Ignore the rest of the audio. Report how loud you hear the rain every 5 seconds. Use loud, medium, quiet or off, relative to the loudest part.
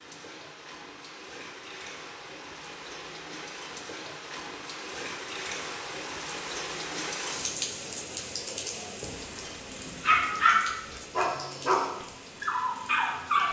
medium, loud, medium.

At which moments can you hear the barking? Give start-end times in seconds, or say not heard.
9.0-13.4.